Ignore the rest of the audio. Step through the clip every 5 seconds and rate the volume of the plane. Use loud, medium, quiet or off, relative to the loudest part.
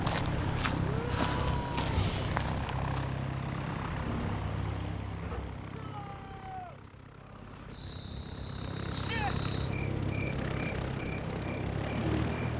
loud, medium, loud.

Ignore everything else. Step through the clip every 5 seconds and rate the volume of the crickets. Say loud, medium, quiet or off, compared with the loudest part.
medium, medium, loud.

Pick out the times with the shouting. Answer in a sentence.
You can hear the shouting from 0.8 to 1.9 s, from 5.7 to 6.8 s and from 8.9 to 9.3 s.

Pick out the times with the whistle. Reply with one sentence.
You can't hear the whistle here.